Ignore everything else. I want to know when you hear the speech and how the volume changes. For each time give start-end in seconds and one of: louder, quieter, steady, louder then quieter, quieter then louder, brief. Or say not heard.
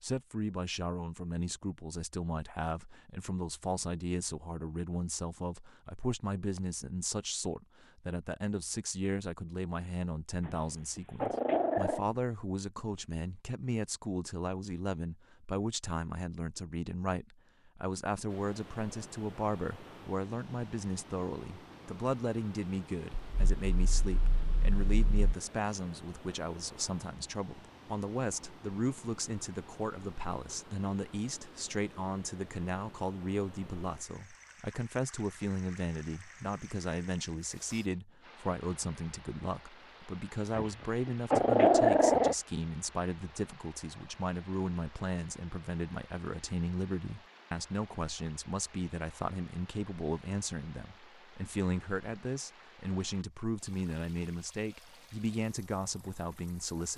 0.0-56.9 steady.